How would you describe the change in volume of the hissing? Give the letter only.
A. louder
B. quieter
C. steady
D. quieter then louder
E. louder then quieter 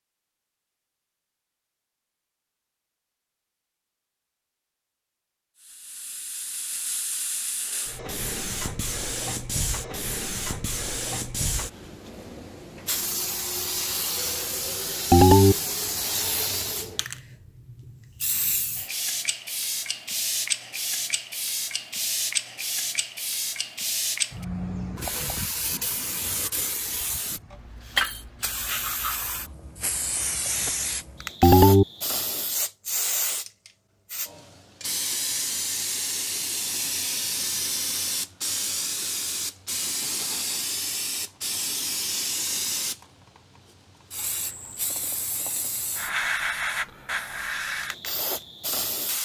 C.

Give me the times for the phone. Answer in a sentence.
The phone can be heard from 15.1 to 15.6 s and from 31.4 to 31.9 s.